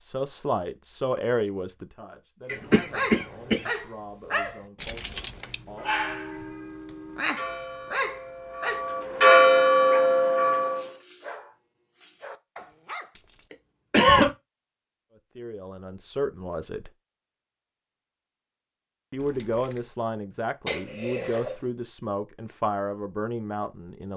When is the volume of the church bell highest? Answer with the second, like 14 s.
9 s.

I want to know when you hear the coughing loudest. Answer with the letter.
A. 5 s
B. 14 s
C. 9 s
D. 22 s
B.